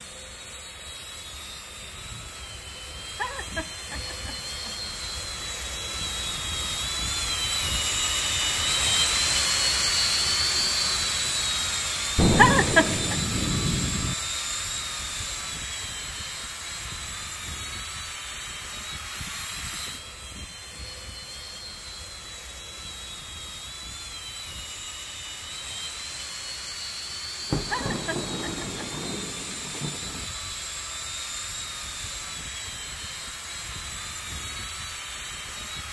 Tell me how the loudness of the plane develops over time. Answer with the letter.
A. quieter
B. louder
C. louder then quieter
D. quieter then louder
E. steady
C.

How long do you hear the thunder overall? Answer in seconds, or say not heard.
5 s.